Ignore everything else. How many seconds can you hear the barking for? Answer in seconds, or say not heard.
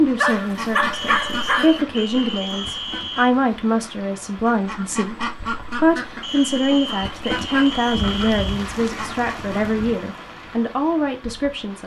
4 s.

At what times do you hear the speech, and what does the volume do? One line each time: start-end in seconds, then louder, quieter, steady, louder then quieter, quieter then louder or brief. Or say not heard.
0.0-11.8 steady.